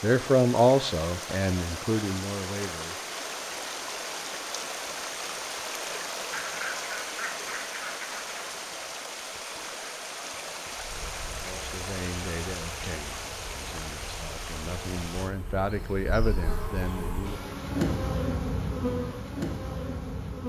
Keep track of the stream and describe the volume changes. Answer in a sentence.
The volume of the stream stays about the same.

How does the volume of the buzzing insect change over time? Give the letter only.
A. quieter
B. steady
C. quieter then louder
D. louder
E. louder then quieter
D.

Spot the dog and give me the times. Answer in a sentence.
The dog can't be heard in this clip.